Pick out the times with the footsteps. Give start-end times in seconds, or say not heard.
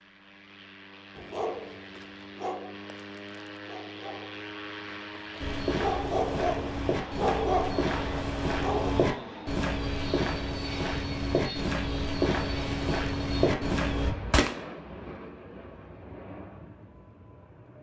5.3-14.1.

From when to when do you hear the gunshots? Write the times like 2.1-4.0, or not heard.
14.0-15.1.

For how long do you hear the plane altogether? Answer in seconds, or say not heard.
18 s.